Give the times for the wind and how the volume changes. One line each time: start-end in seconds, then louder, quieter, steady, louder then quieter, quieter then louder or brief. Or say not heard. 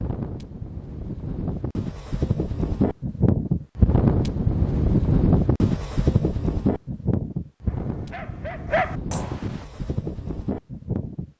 0.0-11.3 louder then quieter.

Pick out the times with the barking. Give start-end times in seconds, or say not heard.
7.7-9.7.